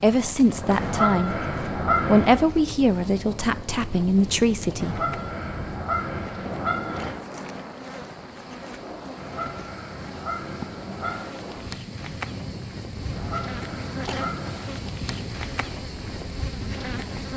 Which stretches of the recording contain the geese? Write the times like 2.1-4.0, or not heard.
0.8-2.5, 4.8-7.2, 9.2-11.2, 13.1-14.8.